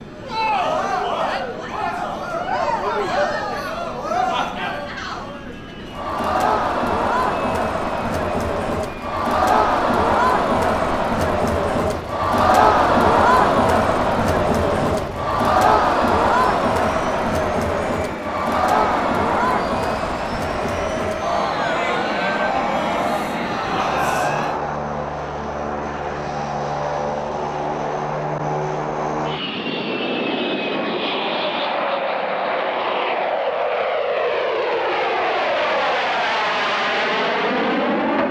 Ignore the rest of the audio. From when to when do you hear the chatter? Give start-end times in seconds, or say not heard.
0.1-24.6.